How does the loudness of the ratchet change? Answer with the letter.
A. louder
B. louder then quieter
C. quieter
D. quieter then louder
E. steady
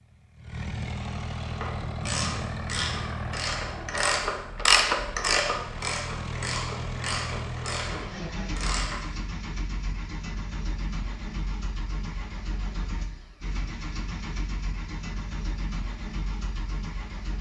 B.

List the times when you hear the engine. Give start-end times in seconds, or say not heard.
0.0-17.3.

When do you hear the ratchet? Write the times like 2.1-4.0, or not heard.
1.4-9.0.